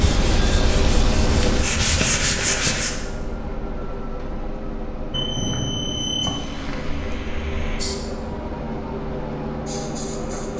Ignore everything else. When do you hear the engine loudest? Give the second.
1 s.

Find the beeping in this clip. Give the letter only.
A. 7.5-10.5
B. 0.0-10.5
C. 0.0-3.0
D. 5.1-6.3
D.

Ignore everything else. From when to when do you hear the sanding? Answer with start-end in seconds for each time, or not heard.
0.0-3.0.